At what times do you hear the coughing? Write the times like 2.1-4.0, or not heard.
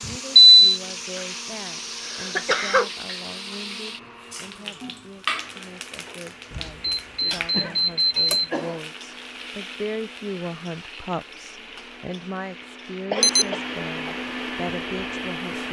1.1-2.9, 7.2-8.8, 13.1-14.2.